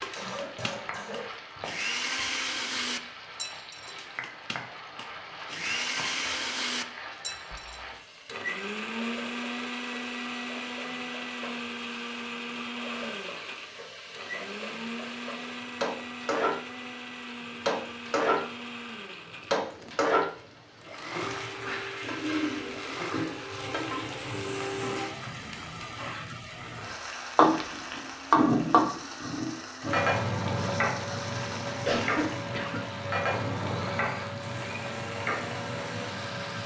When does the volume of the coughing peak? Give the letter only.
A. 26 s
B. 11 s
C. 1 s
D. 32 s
D.